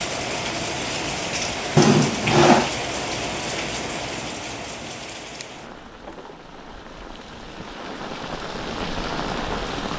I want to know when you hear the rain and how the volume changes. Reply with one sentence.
You can hear the rain from 0.0 to 9.9 s, getting quieter then louder.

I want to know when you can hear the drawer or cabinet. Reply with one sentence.
The drawer or cabinet can be heard from 1.8 to 2.7 s and from 5.4 to 7.0 s.